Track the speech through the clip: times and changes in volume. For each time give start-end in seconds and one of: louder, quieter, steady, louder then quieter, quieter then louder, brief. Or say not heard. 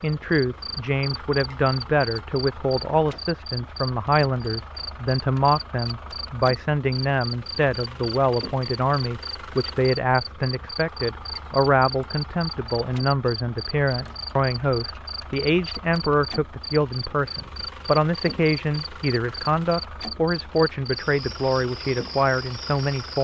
0.0-23.2 steady.